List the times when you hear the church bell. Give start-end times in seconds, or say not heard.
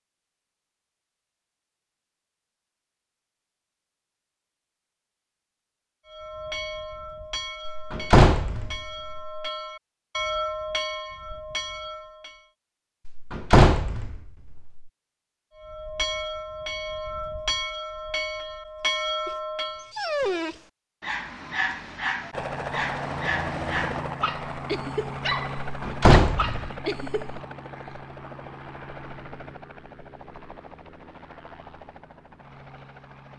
6.0-12.5, 15.6-20.1.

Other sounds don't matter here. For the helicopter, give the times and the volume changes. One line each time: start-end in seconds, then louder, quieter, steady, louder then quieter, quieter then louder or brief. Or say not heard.
22.3-33.3 quieter.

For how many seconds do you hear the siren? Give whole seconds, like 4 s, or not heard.
not heard.